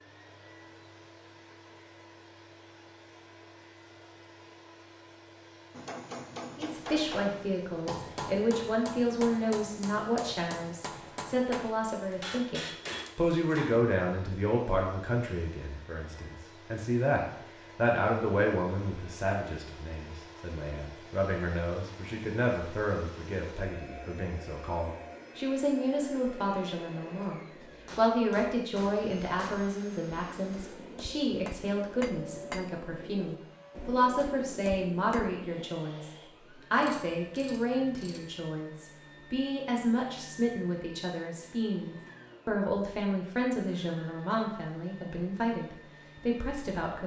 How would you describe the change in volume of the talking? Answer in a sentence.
The volume of the talking stays about the same.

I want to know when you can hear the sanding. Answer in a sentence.
You can't hear the sanding here.